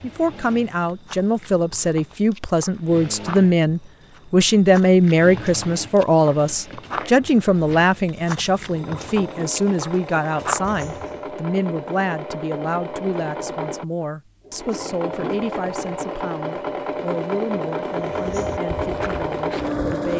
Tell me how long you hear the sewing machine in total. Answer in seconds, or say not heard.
20 s.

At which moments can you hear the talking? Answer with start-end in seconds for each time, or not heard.
0.0-20.1.